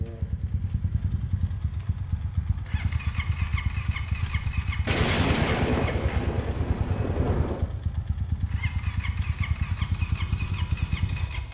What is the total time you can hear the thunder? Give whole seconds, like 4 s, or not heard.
3 s.